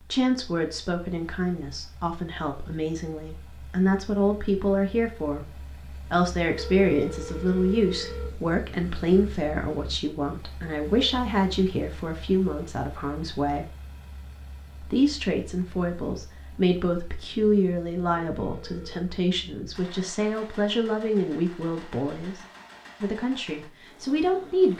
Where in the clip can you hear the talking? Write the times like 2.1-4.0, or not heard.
0.1-13.7, 14.8-22.4, 23.0-24.7.